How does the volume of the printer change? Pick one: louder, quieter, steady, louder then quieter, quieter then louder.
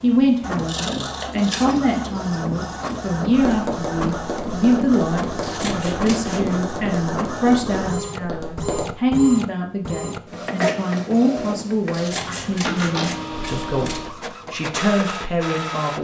steady.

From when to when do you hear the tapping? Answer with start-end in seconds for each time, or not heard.
3.2-9.1.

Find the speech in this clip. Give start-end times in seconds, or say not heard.
0.0-16.0.